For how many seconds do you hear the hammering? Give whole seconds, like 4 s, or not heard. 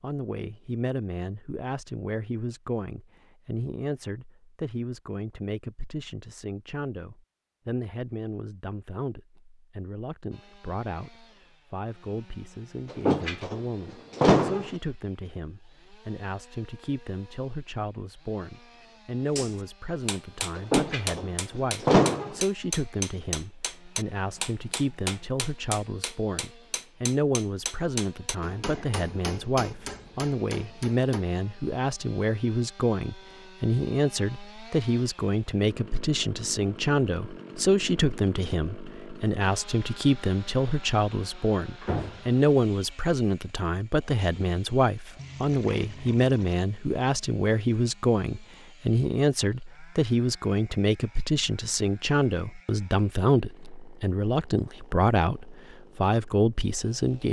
12 s.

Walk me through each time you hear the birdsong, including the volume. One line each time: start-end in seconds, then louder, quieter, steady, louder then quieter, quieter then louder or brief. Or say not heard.
not heard.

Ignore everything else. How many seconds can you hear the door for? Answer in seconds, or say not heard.
4 s.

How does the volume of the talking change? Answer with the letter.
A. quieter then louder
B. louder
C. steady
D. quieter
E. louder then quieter
B.